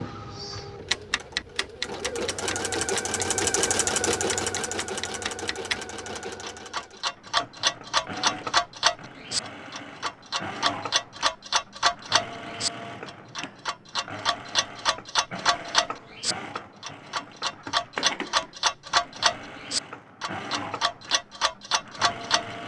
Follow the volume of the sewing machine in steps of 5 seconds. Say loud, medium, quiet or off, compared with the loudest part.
loud, medium, medium, medium, medium.